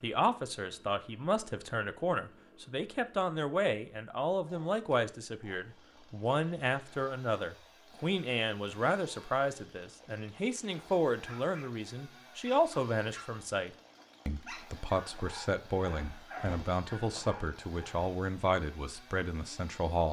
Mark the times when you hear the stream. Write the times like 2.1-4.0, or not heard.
not heard.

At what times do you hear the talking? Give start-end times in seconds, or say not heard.
0.0-20.0.